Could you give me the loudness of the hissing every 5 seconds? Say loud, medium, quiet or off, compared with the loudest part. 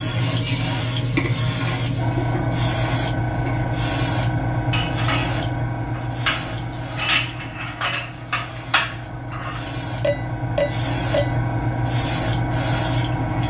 loud, medium, loud.